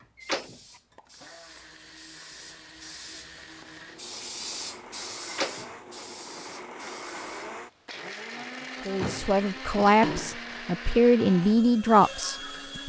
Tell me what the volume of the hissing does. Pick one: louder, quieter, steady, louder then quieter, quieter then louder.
louder then quieter.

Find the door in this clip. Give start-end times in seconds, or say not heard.
0.1-0.6, 5.2-5.7, 8.9-10.3.